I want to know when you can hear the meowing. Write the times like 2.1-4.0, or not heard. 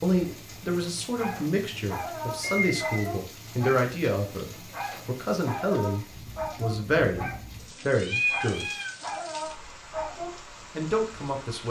2.4-3.0, 8.0-8.9.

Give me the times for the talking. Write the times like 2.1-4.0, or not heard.
0.0-8.7, 10.8-11.6.